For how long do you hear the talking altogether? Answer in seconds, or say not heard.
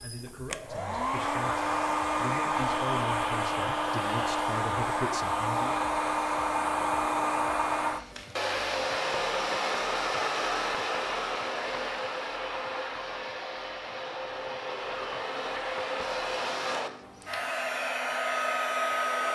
6 s.